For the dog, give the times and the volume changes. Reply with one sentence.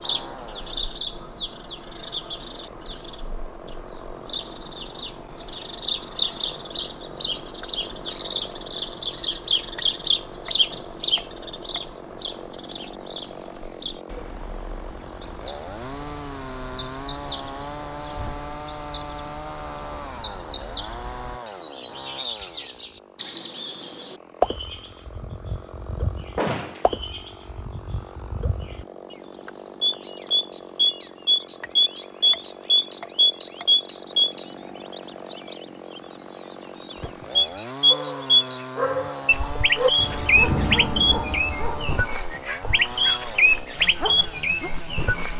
You can hear the dog from 37.0 to 44.7 s, getting louder then quieter.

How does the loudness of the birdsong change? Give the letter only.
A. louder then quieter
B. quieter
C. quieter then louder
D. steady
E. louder
E.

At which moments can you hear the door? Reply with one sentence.
You can hear the door from 26.4 to 26.9 s.